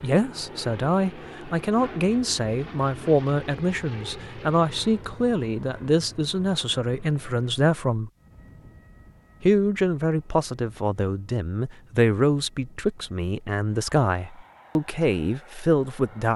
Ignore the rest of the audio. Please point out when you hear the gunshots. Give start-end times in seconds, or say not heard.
not heard.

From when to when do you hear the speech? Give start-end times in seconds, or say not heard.
0.0-8.1, 9.4-16.3.